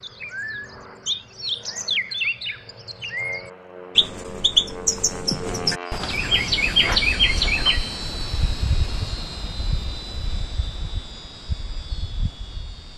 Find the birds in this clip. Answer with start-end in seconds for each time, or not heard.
0.0-12.9.